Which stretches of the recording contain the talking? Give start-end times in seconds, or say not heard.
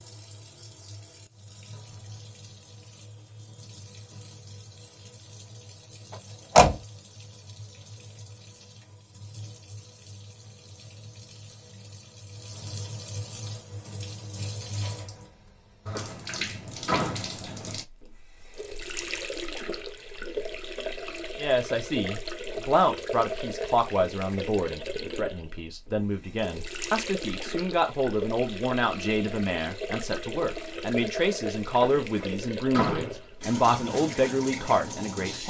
21.4-35.4.